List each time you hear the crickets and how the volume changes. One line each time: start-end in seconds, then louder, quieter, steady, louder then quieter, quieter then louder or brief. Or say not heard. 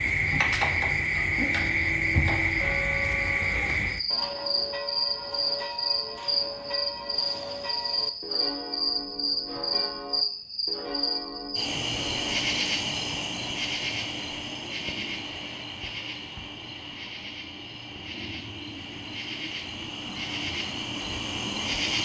0.0-21.9 quieter.